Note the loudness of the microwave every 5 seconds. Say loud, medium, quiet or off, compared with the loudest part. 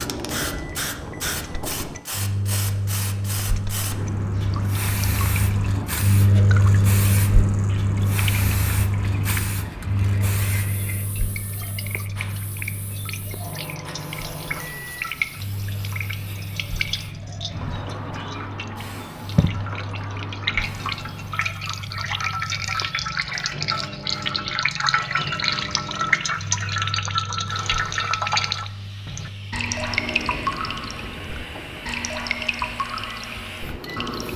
medium, loud, medium, quiet, quiet, quiet, quiet.